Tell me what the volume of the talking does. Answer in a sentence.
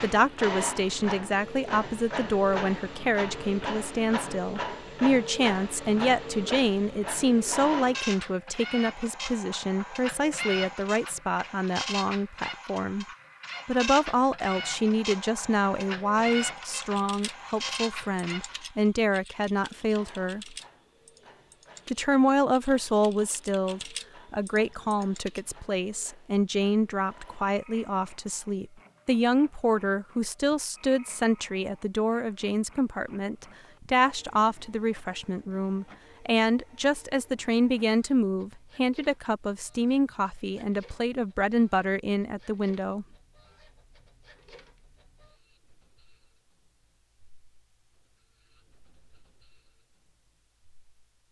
The loudness of the talking stays about the same.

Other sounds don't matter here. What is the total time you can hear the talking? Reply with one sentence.
You can hear the talking for 41 seconds altogether.